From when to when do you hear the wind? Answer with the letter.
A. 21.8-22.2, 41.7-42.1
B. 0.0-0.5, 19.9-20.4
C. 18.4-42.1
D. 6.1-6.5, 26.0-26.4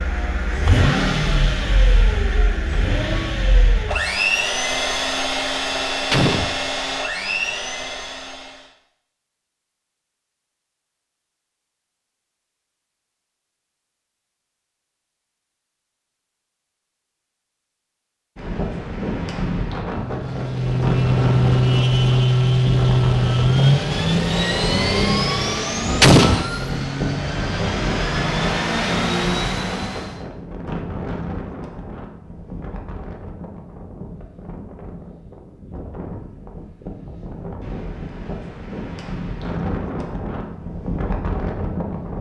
C.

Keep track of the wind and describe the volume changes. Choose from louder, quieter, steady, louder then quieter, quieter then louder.
quieter then louder.